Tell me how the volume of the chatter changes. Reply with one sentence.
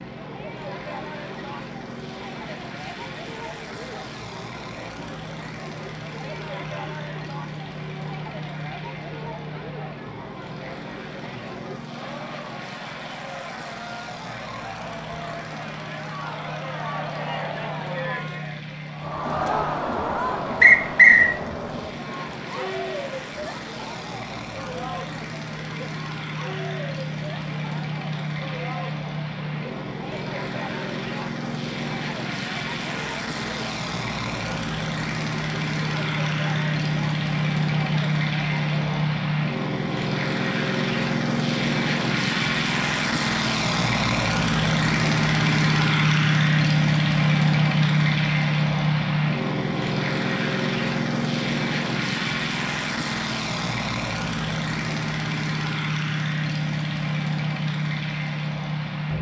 The loudness of the chatter goes up, then down.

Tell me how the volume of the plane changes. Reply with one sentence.
The loudness of the plane goes up.